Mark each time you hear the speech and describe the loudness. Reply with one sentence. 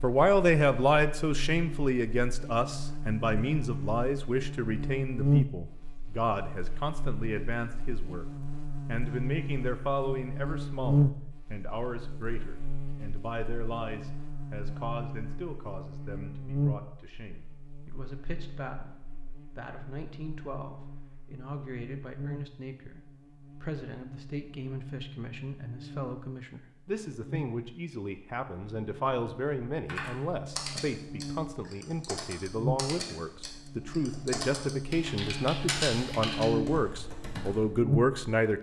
The speech can be heard from 0.0 to 8.2 s, getting quieter; and from 8.8 to 38.5 s, getting quieter then louder.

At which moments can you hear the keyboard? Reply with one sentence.
The keyboard can be heard from 29.9 to 37.6 s.